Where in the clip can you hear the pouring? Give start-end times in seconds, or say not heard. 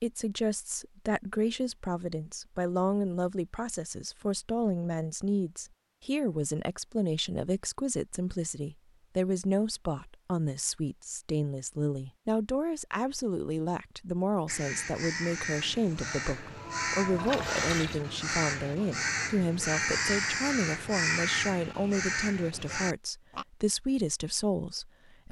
17.1-18.0.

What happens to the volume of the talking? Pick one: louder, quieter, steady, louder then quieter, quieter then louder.
steady.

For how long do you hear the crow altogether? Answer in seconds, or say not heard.
9 s.